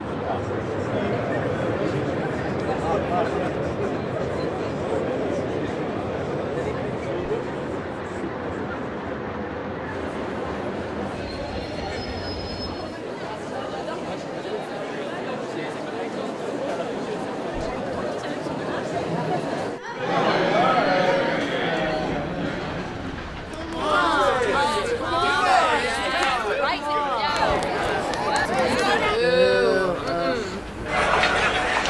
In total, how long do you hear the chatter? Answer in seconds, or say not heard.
32 s.